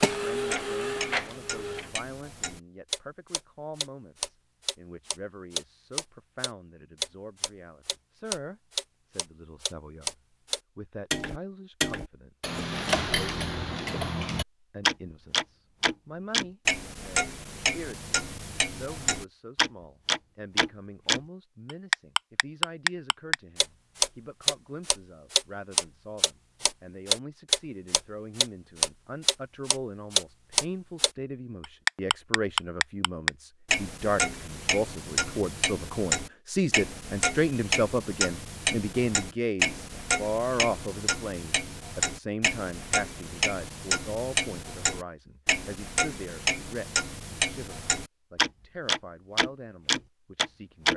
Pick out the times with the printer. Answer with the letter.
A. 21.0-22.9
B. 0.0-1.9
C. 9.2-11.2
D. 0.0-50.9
B.